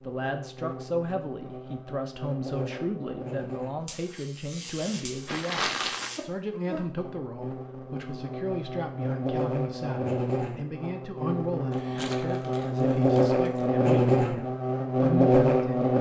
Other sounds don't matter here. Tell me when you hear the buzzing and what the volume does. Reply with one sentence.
You can hear the buzzing from 0.0 to 15.9 s, getting louder.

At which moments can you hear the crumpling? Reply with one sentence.
The crumpling can be heard from 5.2 to 6.2 s and from 11.7 to 13.7 s.